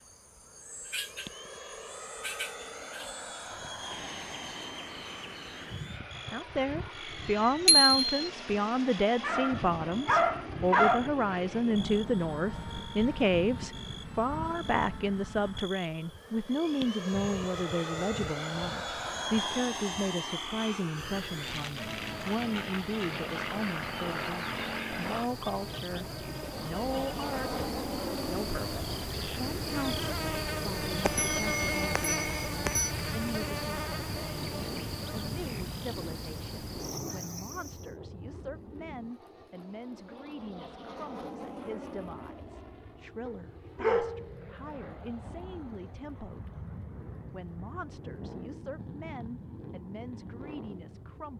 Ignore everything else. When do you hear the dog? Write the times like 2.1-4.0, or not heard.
9.2-11.1, 43.2-44.2.